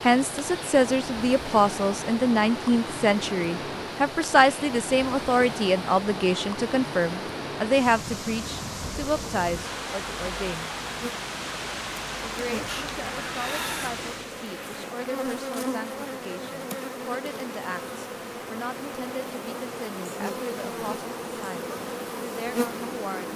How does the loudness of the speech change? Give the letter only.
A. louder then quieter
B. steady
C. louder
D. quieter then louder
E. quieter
E.